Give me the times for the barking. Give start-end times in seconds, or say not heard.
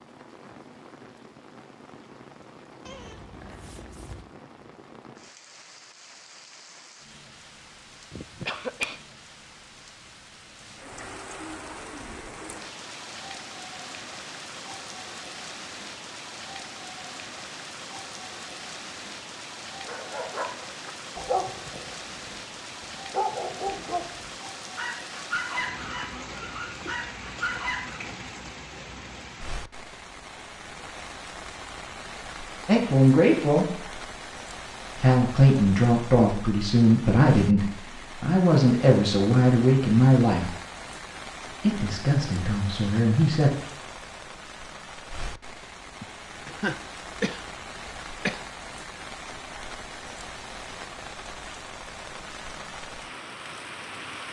19.9-28.1.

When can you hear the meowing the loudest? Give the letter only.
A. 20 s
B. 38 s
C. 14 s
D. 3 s
D.